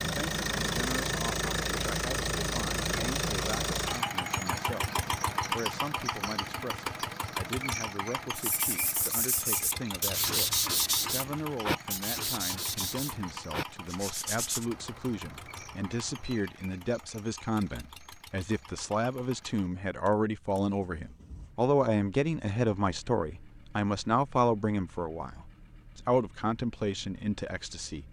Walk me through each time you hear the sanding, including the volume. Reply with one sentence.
The sanding can be heard from 8.3 to 14.7 s, getting louder then quieter.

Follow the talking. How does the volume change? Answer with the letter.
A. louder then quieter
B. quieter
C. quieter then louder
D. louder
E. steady
D.